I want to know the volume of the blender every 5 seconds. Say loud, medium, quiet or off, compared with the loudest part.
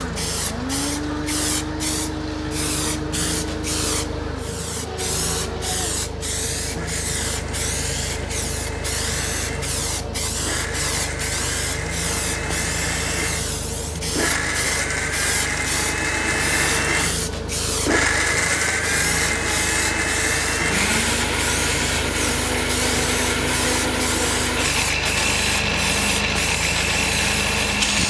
medium, quiet, medium, loud, loud, loud.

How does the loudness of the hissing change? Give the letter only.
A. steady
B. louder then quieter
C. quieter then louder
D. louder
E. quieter
A.